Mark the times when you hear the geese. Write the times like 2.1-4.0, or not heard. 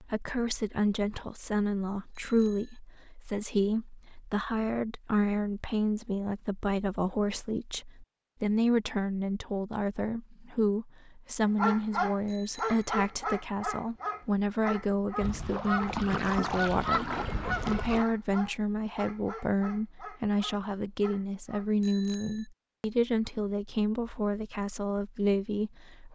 15.2-18.1.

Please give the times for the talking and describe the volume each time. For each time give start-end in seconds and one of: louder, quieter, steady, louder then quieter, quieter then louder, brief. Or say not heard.
0.0-26.1 steady.